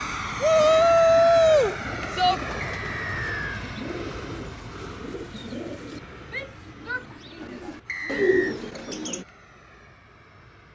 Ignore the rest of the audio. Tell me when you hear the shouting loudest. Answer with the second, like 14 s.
1 s.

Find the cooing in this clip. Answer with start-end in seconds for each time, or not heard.
0.5-9.2.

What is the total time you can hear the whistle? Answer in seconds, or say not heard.
2 s.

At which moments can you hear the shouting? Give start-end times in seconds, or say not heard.
0.4-2.4, 6.2-8.2.